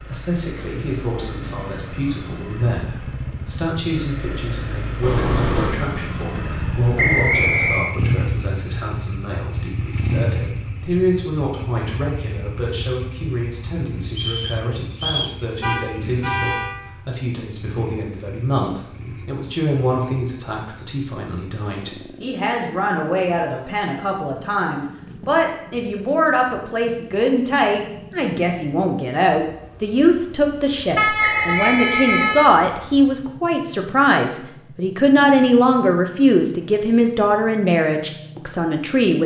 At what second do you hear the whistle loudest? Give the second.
7 s.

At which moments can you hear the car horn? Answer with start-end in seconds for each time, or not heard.
5.0-5.8, 15.6-16.8, 30.9-32.5.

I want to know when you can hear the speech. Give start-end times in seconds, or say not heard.
0.0-39.2.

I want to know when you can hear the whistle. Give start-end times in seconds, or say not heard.
7.0-8.0, 14.1-15.4, 31.2-32.5.